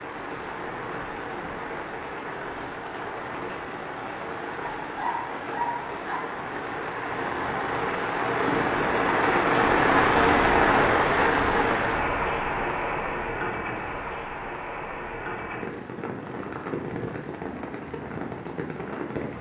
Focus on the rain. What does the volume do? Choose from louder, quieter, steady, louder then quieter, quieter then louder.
louder then quieter.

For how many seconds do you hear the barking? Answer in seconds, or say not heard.
2 s.